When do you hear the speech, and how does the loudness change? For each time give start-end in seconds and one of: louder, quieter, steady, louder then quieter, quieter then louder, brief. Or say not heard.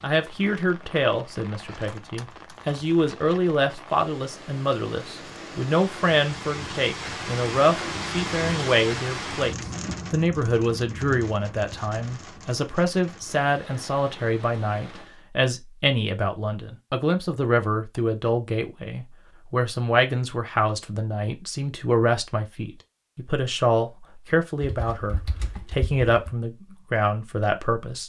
0.0-28.0 steady.